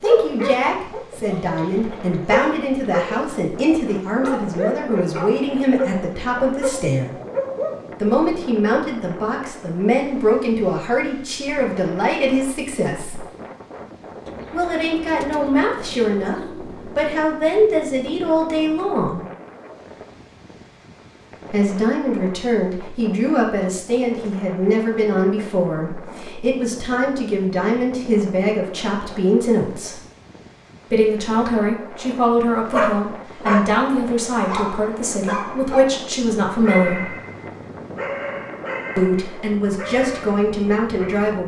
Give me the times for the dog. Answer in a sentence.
The dog can be heard from 0.0 to 8.1 s and from 32.7 to 41.3 s.